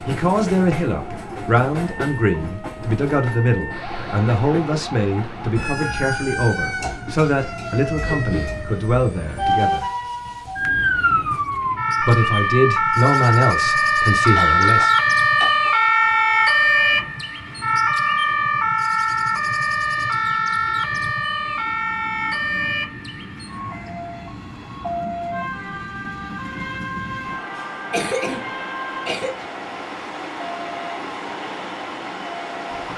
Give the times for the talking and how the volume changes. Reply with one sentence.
The talking can be heard from 0.1 to 9.8 s, at a steady volume; and briefly from 12.0 to 14.9 s.